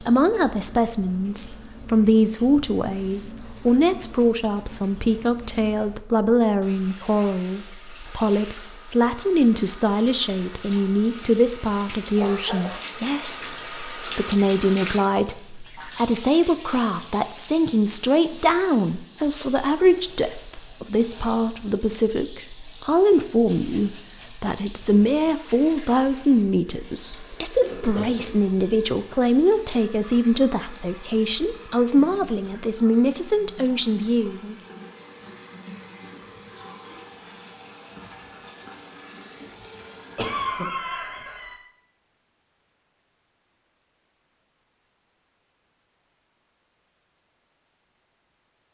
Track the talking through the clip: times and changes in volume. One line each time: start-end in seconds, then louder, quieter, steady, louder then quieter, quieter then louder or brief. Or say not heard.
0.0-34.5 steady.